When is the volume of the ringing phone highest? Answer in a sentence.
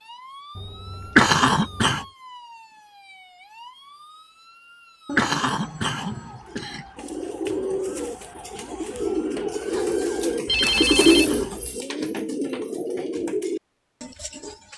The loudest moment of the ringing phone is at 11 seconds.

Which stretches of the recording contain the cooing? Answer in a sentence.
The cooing can be heard from 6.5 to 14.7 s.